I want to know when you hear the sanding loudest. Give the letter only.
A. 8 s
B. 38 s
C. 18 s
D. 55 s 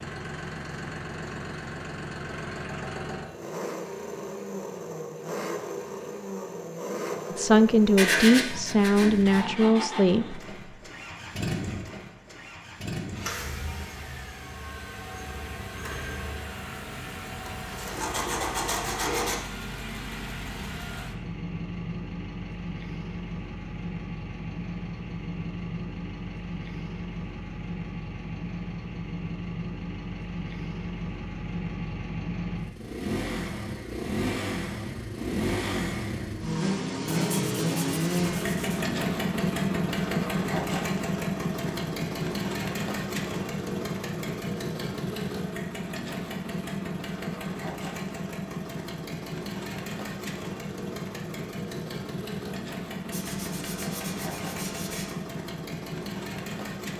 A.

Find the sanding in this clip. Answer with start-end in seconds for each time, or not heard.
8.0-9.4, 17.4-19.4, 37.1-38.9, 53.1-55.1.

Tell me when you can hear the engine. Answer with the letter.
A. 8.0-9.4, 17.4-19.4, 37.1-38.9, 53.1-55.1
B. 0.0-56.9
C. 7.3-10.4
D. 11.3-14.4
B.